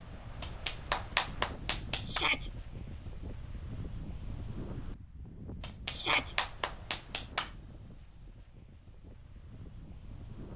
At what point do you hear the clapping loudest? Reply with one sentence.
The loudest moment of the clapping is at 1 second.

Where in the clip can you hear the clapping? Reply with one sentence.
The clapping can be heard from 0.4 to 2.2 s and from 5.6 to 7.5 s.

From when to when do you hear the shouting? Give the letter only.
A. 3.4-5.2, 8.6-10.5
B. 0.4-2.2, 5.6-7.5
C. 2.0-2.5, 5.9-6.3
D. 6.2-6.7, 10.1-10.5
C.